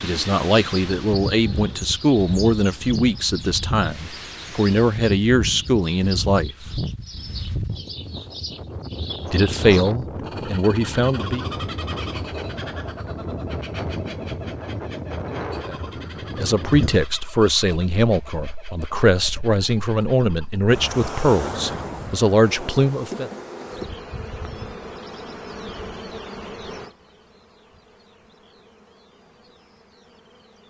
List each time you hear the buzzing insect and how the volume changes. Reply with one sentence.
The buzzing insect can be heard from 22.4 to 30.6 s, getting quieter.